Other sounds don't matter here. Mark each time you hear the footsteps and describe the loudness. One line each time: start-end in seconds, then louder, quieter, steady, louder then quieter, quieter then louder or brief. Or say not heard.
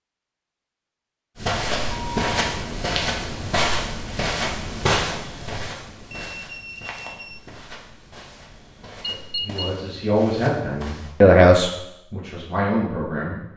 1.4-11.2 quieter.